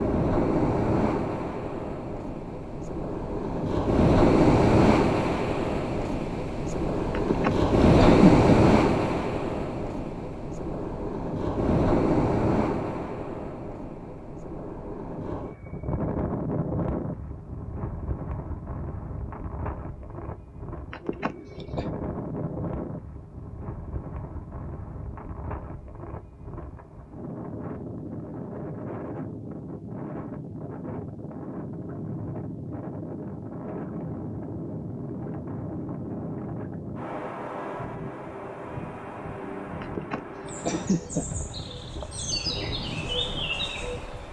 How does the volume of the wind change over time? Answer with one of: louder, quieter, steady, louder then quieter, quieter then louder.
quieter.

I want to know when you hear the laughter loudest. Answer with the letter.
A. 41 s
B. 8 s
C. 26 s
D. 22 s
B.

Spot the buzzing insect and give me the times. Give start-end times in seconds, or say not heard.
40.5-44.2.